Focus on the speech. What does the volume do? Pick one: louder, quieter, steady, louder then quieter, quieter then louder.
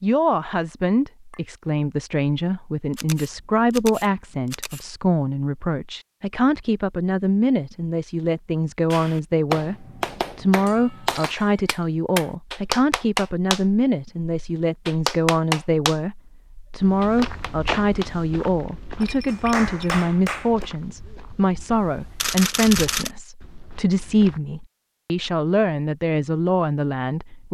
steady.